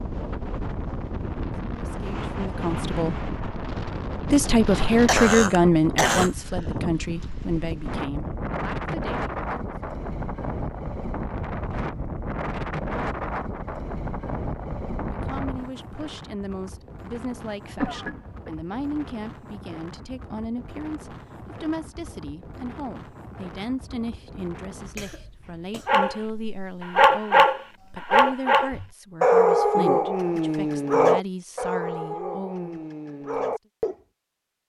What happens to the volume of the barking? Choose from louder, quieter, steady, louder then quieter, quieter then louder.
quieter.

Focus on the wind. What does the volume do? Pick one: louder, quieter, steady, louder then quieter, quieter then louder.
quieter.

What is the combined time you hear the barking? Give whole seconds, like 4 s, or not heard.
8 s.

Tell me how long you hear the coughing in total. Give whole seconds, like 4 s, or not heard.
4 s.